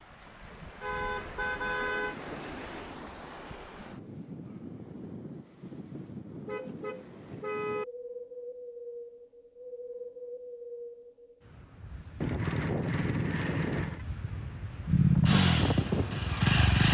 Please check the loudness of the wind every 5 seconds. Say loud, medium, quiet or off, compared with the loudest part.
medium, medium, medium, loud.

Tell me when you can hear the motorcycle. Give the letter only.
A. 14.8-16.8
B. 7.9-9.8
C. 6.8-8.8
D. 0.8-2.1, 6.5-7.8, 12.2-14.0
A.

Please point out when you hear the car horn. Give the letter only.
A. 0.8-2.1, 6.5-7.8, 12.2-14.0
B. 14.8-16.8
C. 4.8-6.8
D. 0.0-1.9
A.